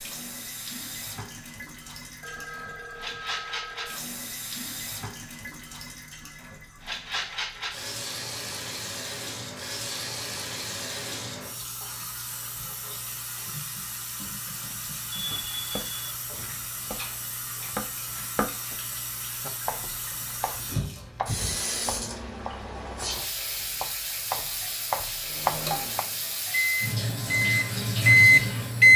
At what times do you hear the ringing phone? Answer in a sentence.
You can hear the ringing phone from 2.2 to 4.0 s and from 15.1 to 15.9 s.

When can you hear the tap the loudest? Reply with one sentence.
The loudest moment of the tap is at 28 seconds.